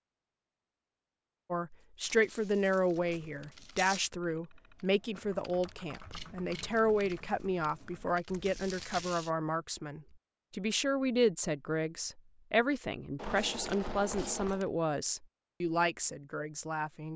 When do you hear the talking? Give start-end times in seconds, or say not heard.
1.5-17.1.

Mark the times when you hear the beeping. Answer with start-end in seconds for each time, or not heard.
not heard.